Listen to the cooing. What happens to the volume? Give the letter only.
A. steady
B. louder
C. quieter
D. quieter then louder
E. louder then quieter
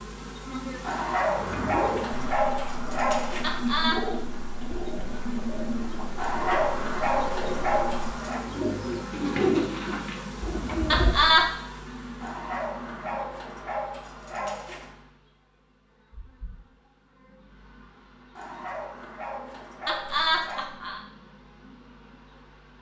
B.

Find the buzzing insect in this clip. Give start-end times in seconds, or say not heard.
0.0-22.7.